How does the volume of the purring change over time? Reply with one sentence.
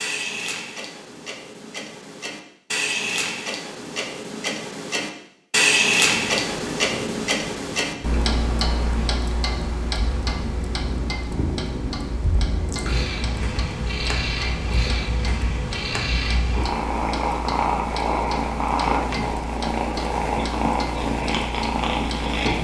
The loudness of the purring goes up.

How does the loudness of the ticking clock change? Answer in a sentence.
The volume of the ticking clock goes up, then down.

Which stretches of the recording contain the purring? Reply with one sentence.
You can hear the purring from 6.1 to 22.5 s.